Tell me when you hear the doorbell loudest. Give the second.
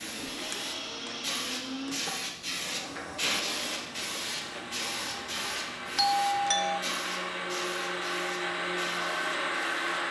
6 s.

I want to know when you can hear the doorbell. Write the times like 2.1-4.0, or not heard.
0.5-1.1, 6.0-6.8.